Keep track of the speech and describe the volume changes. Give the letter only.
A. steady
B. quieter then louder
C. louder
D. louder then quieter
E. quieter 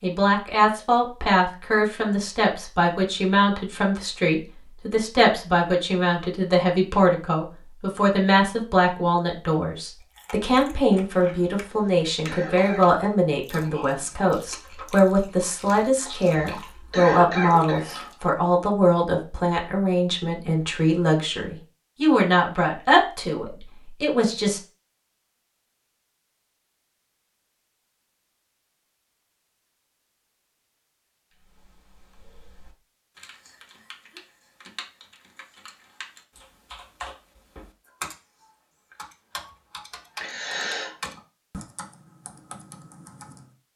A.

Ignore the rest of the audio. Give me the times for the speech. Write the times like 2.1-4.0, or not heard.
0.0-24.6.